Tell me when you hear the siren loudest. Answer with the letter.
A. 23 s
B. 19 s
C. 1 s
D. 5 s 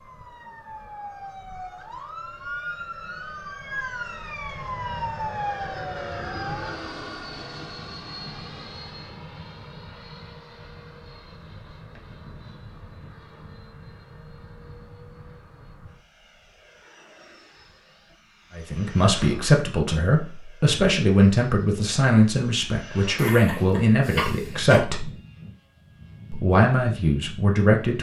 D.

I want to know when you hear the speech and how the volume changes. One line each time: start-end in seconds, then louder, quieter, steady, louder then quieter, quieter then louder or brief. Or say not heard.
18.6-25.1 steady
26.3-27.9 brief.